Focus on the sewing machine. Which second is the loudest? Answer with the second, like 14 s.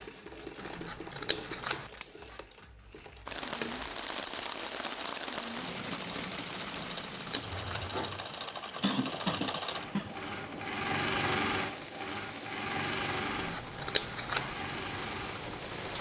11 s.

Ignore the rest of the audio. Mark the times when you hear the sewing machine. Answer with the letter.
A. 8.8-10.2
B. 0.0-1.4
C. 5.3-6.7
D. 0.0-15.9
D.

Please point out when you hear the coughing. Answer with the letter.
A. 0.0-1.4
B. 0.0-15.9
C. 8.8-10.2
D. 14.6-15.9
C.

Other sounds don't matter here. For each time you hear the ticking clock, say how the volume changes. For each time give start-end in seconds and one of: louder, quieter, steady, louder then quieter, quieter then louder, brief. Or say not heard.
not heard.